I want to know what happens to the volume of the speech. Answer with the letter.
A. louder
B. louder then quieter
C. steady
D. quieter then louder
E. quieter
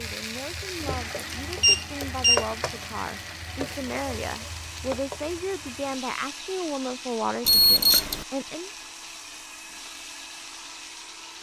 A.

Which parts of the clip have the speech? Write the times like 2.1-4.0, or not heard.
0.0-8.7.